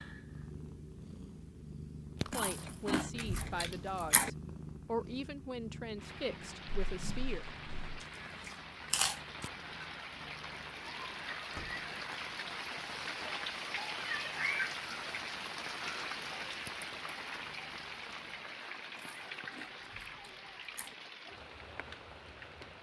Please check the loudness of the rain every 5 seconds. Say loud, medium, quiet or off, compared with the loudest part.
off, medium, loud, loud, medium.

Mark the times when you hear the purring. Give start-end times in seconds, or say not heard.
0.0-18.5.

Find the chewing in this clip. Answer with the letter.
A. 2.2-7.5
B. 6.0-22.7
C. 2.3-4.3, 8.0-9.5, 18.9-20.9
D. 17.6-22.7
C.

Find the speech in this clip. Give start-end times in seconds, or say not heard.
2.2-7.5.